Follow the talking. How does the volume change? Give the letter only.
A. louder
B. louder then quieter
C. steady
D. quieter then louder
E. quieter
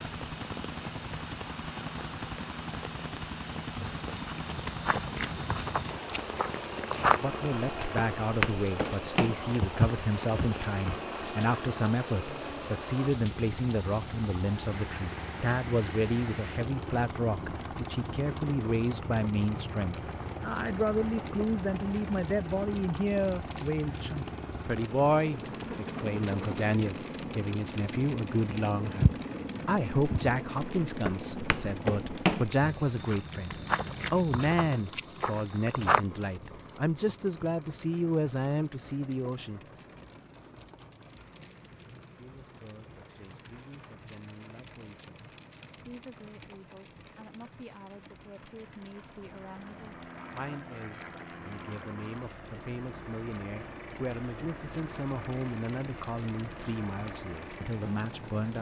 E.